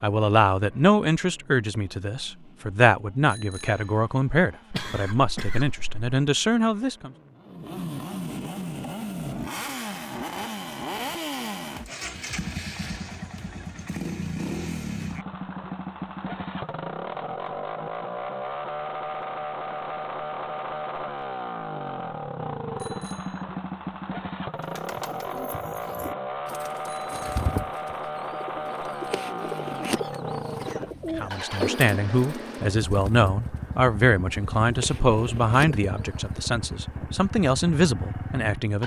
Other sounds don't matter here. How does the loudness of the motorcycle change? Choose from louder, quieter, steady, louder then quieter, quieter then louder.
louder.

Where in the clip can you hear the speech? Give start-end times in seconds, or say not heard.
0.0-7.1, 31.1-38.8.